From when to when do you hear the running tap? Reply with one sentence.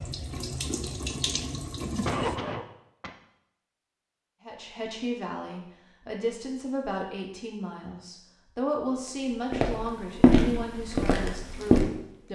The running tap can be heard from 0.0 to 2.4 s.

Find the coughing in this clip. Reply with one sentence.
The coughing can be heard from 2.0 to 3.1 s.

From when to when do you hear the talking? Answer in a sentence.
The talking can be heard from 4.4 to 12.2 s.